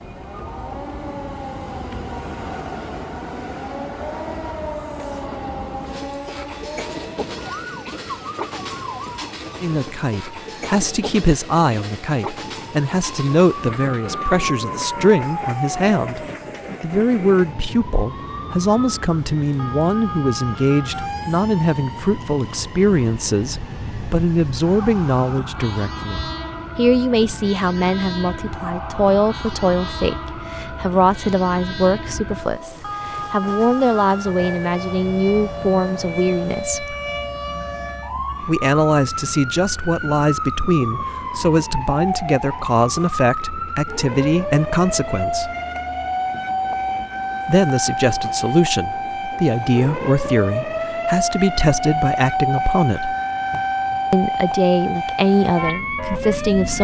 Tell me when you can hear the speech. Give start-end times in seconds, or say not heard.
9.6-16.2, 16.8-37.0, 38.4-45.5, 47.5-53.1, 54.1-56.7.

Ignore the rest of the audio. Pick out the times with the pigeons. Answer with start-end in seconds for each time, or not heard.
not heard.